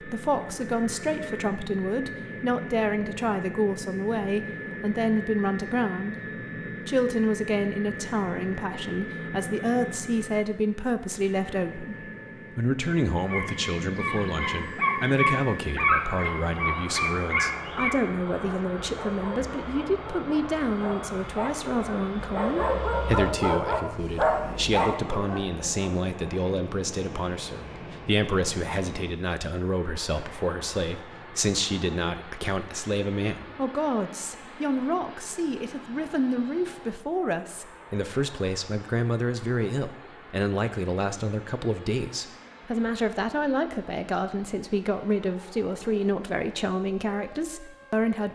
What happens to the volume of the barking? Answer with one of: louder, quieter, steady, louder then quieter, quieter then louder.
quieter then louder.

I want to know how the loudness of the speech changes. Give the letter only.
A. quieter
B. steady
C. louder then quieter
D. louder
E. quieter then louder
B.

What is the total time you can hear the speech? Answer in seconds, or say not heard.
48 s.